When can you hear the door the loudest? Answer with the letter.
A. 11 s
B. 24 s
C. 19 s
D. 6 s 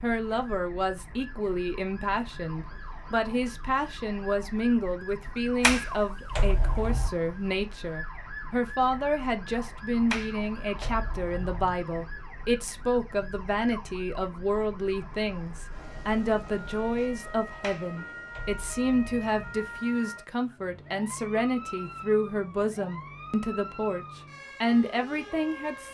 D.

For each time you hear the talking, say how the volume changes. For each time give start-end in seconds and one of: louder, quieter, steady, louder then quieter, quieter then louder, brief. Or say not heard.
0.0-25.8 steady.